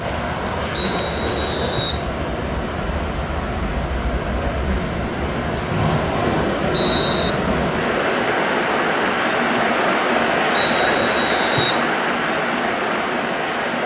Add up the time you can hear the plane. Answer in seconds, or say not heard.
14 s.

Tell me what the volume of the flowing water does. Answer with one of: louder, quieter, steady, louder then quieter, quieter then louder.
louder.